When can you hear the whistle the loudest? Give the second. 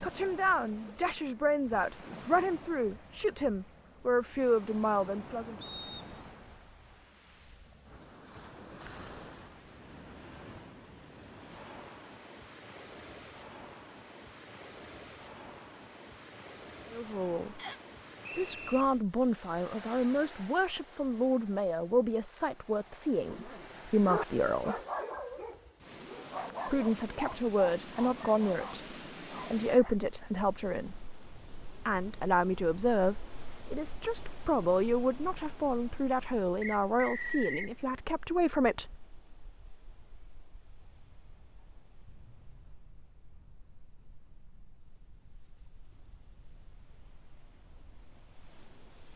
37 s.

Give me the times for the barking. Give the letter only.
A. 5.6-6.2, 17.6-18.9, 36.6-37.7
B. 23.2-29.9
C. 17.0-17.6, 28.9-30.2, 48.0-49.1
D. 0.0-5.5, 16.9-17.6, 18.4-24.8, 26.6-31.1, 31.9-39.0
B.